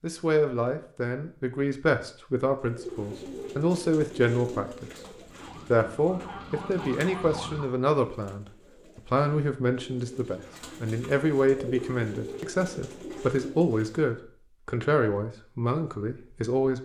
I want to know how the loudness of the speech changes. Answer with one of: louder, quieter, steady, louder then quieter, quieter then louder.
steady.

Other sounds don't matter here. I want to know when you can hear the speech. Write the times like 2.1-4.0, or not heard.
0.0-4.9, 5.7-16.8.